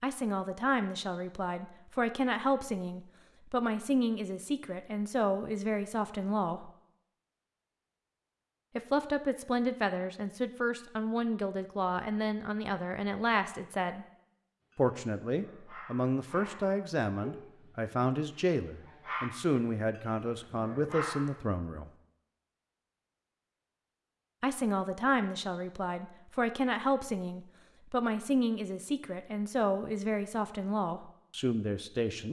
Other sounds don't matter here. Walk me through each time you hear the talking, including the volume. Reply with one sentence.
You can hear the talking from 0.0 to 6.7 s, at a steady volume; from 8.8 to 14.1 s, at a steady volume; from 14.8 to 21.9 s, at a steady volume; and from 24.4 to 32.2 s, at a steady volume.